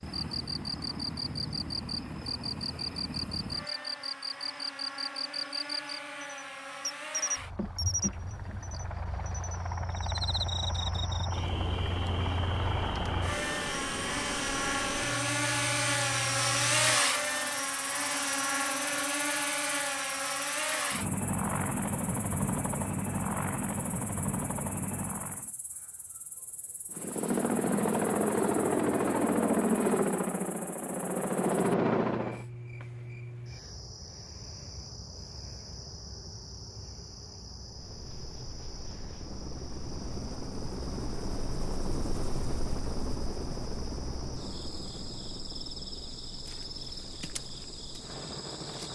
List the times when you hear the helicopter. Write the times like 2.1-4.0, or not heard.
0.0-25.5, 26.9-32.5, 37.6-48.9.